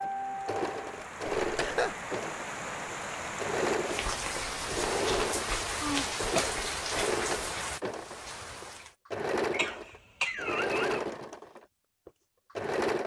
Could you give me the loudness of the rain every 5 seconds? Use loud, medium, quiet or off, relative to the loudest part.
loud, loud, off.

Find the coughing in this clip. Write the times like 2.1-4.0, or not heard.
1.4-1.9, 5.8-7.1, 9.5-11.0.